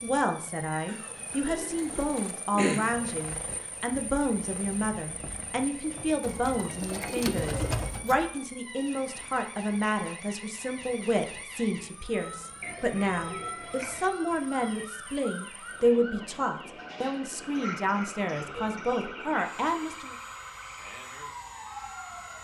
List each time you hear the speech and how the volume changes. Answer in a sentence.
You can hear the speech from 0.0 to 20.1 s, at a steady volume.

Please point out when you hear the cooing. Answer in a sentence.
You can hear the cooing from 1.4 to 3.0 s, from 6.2 to 8.2 s, from 12.6 to 14.1 s and from 18.4 to 20.0 s.